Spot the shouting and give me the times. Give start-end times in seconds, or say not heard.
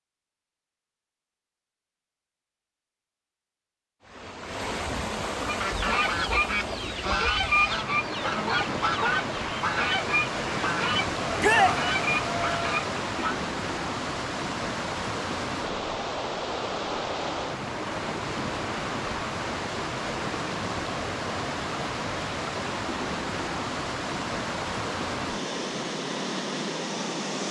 11.4-11.8.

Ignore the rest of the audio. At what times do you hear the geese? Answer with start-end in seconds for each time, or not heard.
5.5-13.3.